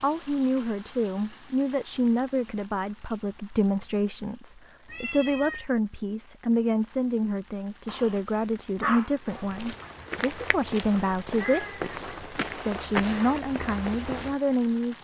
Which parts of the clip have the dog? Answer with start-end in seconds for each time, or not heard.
7.8-9.1.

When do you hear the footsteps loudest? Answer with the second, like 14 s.
13 s.